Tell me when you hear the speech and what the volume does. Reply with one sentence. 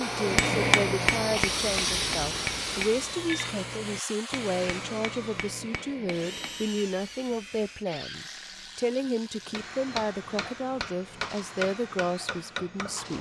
You can hear the speech from 0.0 to 13.1 s, at a steady volume.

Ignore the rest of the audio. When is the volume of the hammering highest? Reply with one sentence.
The loudest moment of the hammering is at 1 second.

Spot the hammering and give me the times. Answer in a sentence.
You can hear the hammering from 0.1 to 6.8 s and from 9.4 to 13.1 s.